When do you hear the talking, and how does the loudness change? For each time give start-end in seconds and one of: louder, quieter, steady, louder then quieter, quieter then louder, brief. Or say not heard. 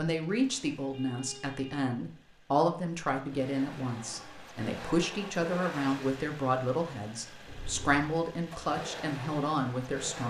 0.0-10.2 steady.